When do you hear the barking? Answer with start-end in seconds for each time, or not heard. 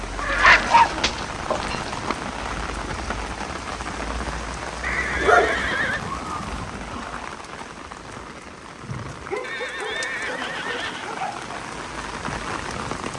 0.2-2.1, 4.8-6.7, 9.3-11.5.